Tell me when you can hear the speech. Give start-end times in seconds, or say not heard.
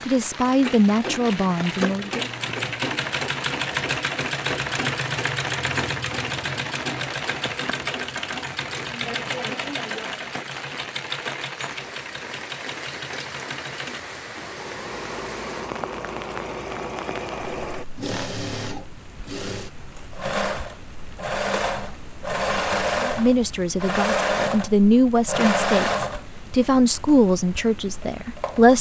0.1-2.2, 22.9-28.7.